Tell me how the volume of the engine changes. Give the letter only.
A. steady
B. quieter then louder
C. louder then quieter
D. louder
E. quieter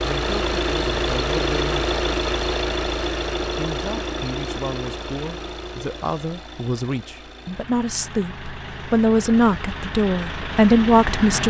B.